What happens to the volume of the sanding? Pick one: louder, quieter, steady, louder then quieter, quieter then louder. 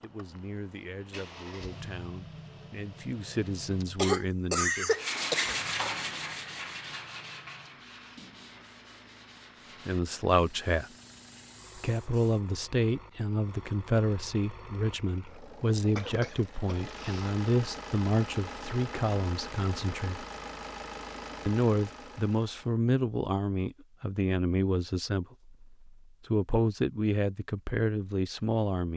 quieter.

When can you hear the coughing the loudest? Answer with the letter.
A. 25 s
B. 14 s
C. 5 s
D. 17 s
C.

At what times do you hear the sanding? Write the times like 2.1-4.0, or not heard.
4.8-12.4.